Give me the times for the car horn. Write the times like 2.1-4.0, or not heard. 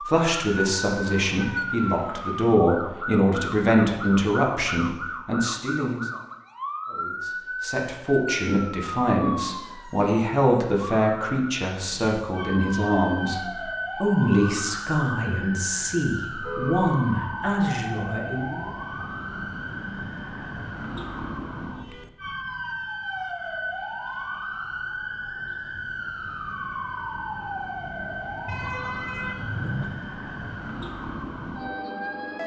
0.6-2.4, 16.4-16.9, 28.4-29.9.